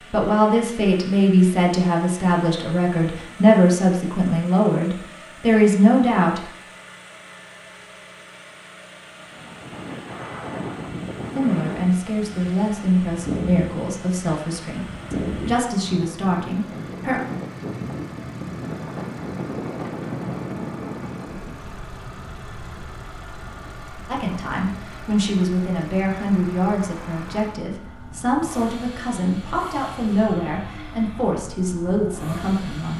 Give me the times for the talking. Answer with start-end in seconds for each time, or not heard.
0.1-6.5, 11.3-17.2, 24.1-32.9.